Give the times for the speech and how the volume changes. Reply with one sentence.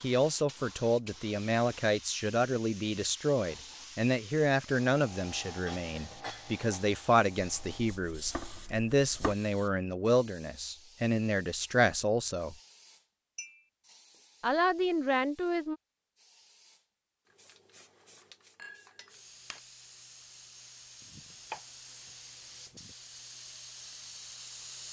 You can hear the speech from 0.0 to 12.6 s, at a steady volume; and briefly from 14.4 to 15.8 s.